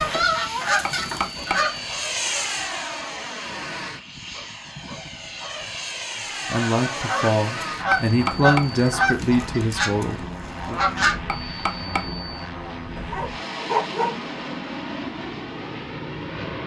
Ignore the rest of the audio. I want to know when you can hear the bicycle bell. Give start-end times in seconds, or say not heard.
0.8-2.0, 7.9-8.8, 11.2-12.2.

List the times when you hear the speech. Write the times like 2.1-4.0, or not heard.
6.5-10.8.